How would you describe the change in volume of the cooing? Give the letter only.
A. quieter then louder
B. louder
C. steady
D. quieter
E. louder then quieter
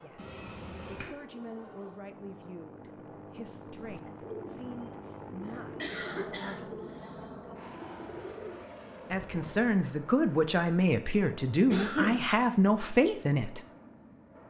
A.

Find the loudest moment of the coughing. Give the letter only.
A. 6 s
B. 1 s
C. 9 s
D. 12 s
D.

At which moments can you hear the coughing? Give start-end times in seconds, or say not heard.
0.1-1.1, 5.5-7.5, 11.7-12.2.